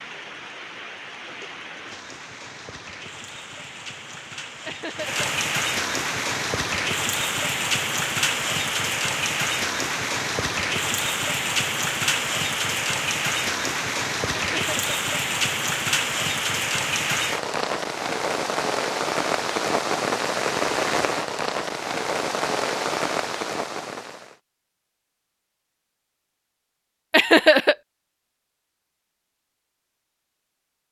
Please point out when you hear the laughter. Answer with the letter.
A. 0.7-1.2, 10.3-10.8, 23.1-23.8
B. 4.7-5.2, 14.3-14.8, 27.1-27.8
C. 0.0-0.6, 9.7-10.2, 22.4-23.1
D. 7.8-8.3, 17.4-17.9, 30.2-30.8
B.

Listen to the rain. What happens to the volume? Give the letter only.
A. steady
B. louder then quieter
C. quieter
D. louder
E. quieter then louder
D.